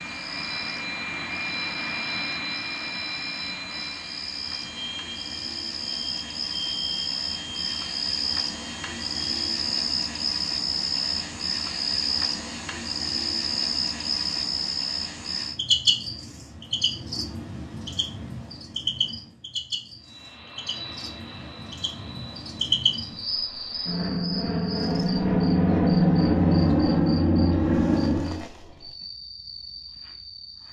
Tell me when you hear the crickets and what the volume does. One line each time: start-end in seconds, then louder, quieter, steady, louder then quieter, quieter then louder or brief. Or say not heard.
0.0-30.6 louder then quieter.